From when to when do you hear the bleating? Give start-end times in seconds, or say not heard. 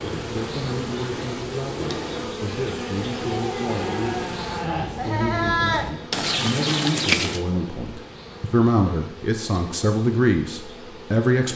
2.5-7.5.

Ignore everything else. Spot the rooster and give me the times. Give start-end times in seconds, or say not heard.
not heard.